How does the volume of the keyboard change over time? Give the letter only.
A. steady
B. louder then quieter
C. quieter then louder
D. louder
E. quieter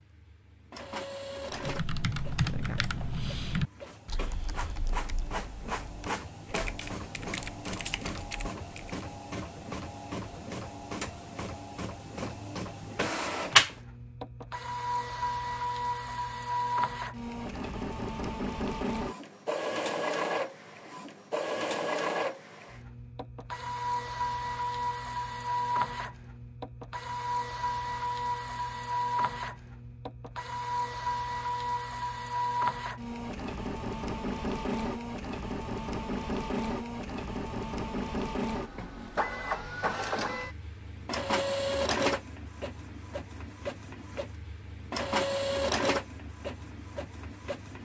C.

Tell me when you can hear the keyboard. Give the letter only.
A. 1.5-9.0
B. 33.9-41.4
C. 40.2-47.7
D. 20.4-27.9
A.